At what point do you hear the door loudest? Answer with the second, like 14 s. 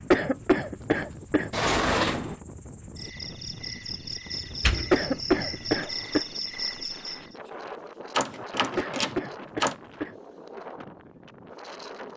2 s.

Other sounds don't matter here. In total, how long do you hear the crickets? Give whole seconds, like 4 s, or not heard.
7 s.